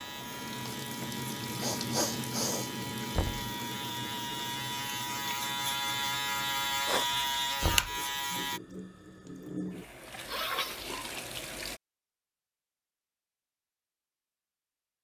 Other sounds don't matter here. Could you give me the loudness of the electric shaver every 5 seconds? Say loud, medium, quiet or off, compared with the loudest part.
medium, loud, off.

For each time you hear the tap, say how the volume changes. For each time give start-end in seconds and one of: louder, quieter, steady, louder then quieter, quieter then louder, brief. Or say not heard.
0.0-11.8 quieter then louder.